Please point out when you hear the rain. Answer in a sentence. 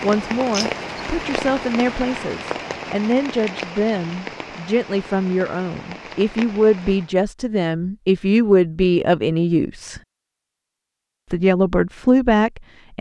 The rain can be heard from 0.0 to 7.2 s.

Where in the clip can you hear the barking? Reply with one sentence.
You can't hear the barking here.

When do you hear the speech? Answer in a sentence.
The speech can be heard from 0.0 to 10.0 s and from 11.3 to 12.9 s.